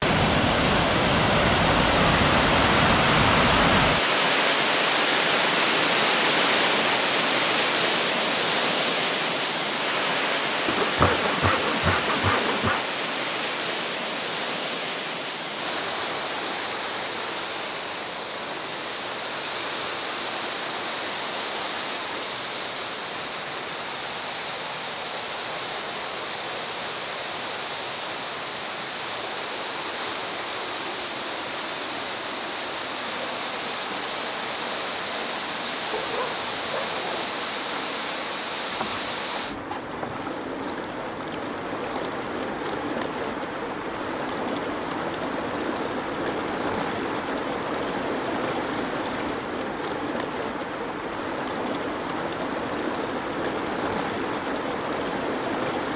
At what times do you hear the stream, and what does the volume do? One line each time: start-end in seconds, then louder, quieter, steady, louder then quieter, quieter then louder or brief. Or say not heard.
0.0-55.9 quieter.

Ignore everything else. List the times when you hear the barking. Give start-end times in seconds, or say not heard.
35.9-37.4.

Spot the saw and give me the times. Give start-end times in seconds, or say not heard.
10.7-12.8, 38.6-40.3.